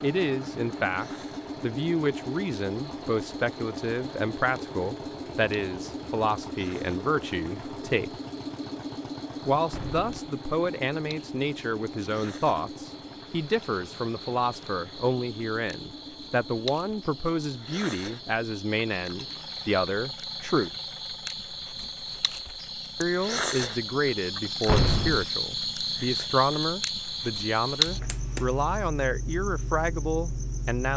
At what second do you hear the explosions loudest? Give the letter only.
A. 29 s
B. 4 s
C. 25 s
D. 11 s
C.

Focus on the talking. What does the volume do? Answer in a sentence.
The volume of the talking stays about the same.